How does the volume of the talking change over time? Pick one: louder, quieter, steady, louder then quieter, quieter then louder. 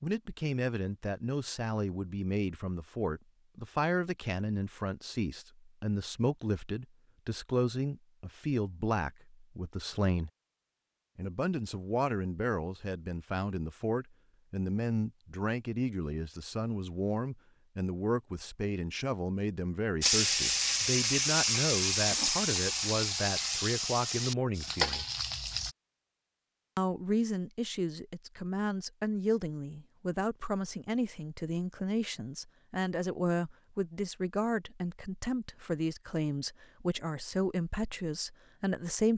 steady.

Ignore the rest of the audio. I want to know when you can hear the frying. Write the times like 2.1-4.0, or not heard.
20.0-25.8.